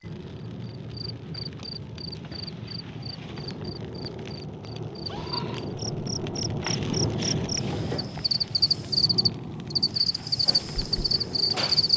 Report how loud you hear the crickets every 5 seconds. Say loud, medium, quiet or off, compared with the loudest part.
quiet, loud, loud.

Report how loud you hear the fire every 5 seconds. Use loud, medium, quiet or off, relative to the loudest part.
medium, loud, medium.